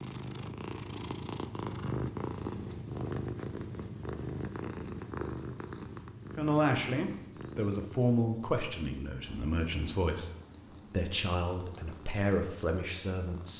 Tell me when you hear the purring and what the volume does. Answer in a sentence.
The purring can be heard from 0.0 to 13.5 s, getting quieter.